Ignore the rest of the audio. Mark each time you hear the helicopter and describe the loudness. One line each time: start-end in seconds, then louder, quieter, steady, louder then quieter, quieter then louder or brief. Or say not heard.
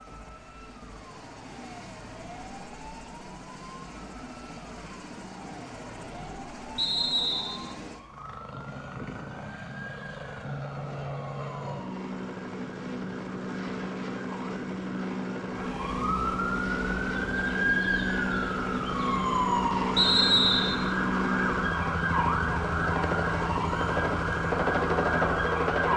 0.0-25.9 louder.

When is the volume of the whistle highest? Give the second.
20 s.